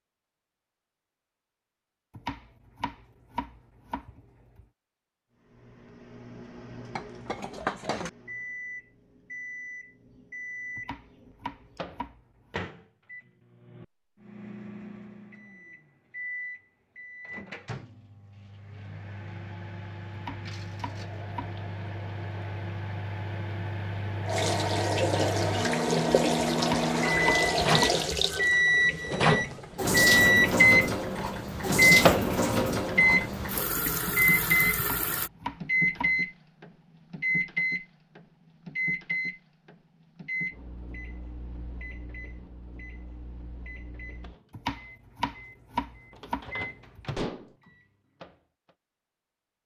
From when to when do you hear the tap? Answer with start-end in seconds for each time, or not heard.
20.8-35.3.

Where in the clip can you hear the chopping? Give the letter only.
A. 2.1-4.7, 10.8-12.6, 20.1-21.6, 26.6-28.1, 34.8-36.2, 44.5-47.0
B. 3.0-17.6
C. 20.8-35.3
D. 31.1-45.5
A.